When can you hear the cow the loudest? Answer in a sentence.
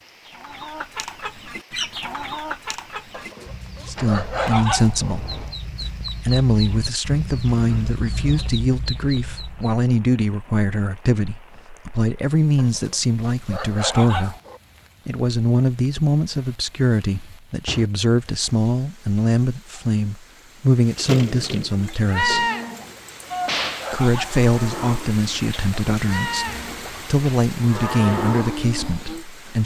The volume of the cow peaks at 22 seconds.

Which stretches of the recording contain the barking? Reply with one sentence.
The barking can be heard from 3.1 to 5.2 s, from 12.6 to 14.6 s and from 22.7 to 24.4 s.